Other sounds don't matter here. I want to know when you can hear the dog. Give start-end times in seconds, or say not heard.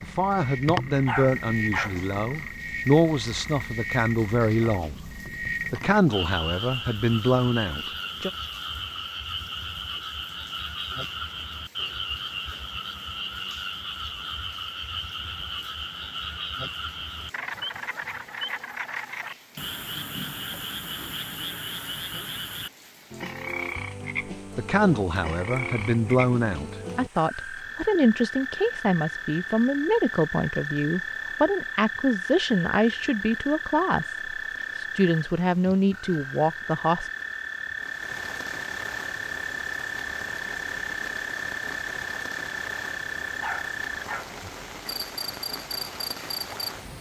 0.9-2.0, 43.2-44.4.